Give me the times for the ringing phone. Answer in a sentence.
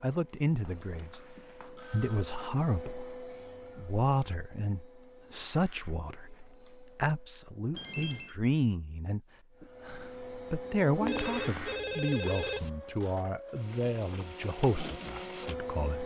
The ringing phone can be heard from 0.6 to 2.5 s, from 7.7 to 8.3 s and from 11.0 to 12.7 s.